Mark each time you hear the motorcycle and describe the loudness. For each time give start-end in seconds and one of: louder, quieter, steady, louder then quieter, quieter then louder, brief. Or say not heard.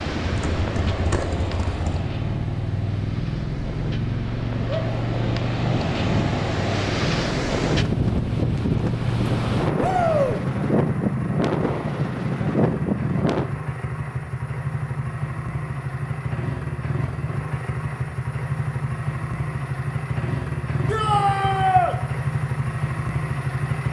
0.2-23.8 steady.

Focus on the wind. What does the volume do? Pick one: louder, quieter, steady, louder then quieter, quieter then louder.
louder.